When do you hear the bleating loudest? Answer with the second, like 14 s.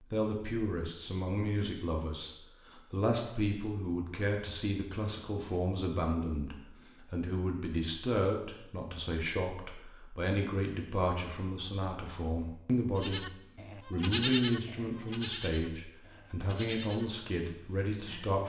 14 s.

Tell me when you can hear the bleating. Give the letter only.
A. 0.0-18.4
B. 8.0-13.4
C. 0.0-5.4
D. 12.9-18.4
D.